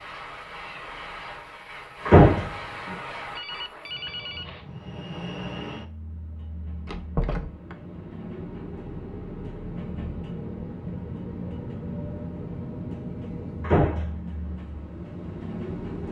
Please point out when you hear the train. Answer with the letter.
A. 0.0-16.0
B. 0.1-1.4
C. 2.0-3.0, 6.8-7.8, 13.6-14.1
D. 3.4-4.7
A.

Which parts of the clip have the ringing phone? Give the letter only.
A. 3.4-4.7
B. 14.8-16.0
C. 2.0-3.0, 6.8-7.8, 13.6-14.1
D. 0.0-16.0
A.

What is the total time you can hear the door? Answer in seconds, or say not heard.
2 s.